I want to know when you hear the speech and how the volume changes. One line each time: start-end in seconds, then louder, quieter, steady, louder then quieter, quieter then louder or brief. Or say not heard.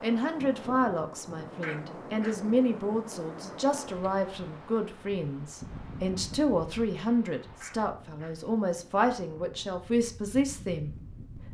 0.0-11.4 steady.